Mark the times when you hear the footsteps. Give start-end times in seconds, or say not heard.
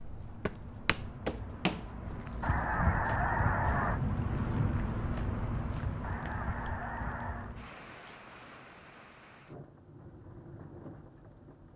0.0-6.8.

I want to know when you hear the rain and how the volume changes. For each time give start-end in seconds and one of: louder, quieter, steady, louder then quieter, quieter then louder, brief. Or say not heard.
0.0-11.7 louder then quieter.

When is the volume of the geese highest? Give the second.
3 s.